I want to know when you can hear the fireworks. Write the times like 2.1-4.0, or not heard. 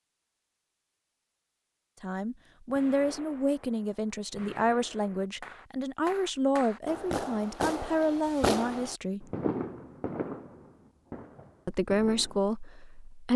2.7-12.4.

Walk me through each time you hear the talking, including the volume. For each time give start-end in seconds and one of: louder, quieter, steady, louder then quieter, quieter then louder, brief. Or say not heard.
2.0-9.2 steady
11.7-13.3 brief.